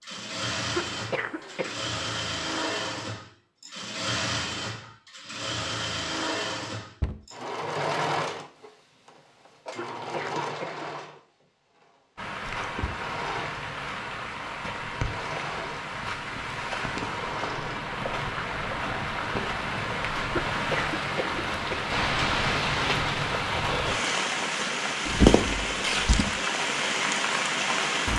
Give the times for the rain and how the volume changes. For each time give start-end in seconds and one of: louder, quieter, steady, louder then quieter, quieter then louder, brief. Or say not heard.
12.2-28.1 louder.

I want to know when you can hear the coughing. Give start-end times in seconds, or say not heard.
0.7-1.9, 9.8-10.9, 20.5-21.9.